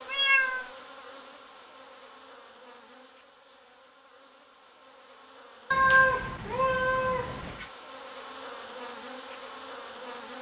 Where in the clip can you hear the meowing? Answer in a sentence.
The meowing can be heard from 0.1 to 0.7 s and from 5.7 to 7.7 s.